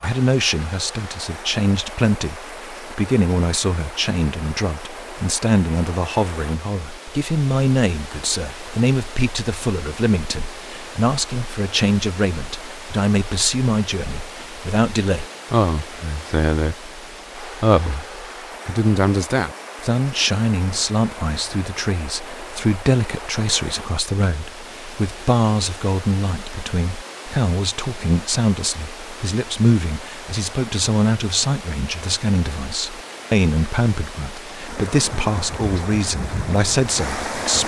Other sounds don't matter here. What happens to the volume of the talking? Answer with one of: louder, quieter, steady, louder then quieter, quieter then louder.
steady.